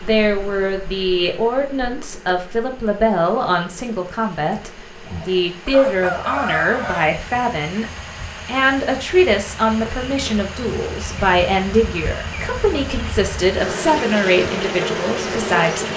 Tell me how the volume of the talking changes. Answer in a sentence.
The loudness of the talking stays about the same.